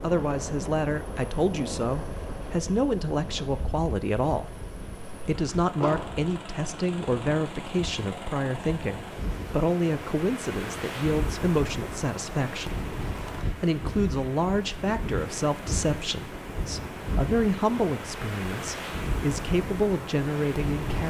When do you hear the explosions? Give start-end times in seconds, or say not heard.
5.8-6.2.